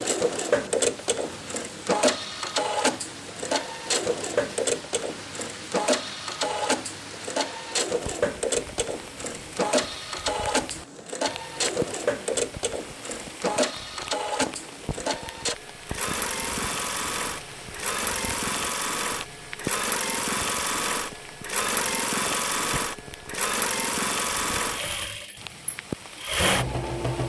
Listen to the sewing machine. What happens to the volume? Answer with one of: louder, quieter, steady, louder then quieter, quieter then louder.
steady.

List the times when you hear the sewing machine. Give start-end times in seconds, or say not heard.
0.0-27.2.